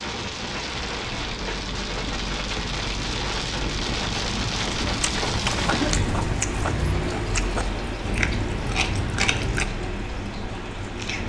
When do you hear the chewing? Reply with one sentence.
You can hear the chewing from 5.0 to 9.7 s.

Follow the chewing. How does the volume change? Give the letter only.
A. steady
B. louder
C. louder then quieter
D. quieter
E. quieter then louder
A.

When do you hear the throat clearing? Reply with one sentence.
The throat clearing can be heard from 5.7 to 6.2 s.